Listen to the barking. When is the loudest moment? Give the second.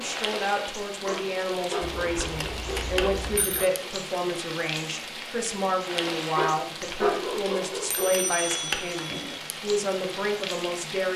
7 s.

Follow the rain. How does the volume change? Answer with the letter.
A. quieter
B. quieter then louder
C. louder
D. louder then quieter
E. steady
E.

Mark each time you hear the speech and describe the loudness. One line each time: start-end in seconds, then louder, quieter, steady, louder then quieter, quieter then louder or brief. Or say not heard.
0.0-11.1 steady.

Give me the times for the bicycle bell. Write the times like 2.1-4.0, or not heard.
1.8-3.7, 7.9-9.4.